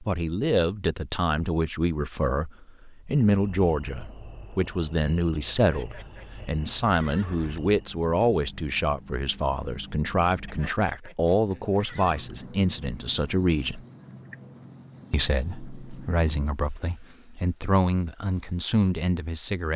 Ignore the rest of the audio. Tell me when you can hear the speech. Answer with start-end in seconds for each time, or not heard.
0.0-13.8, 15.1-19.7.